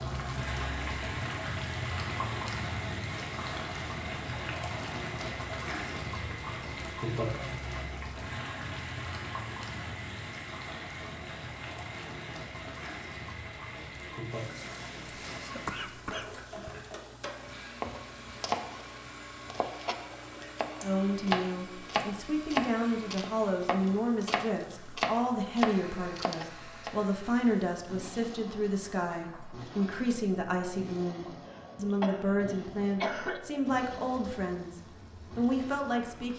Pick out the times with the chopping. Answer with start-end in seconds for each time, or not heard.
17.8-26.9.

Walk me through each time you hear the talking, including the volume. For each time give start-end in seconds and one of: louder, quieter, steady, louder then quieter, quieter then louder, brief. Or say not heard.
20.8-36.3 steady.